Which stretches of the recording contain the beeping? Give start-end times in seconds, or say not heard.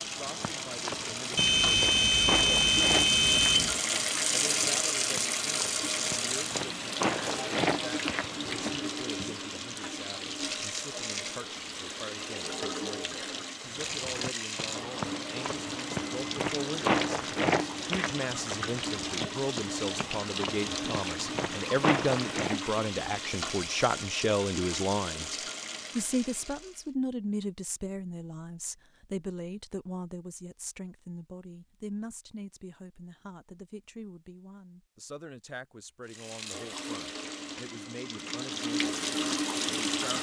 1.4-3.8.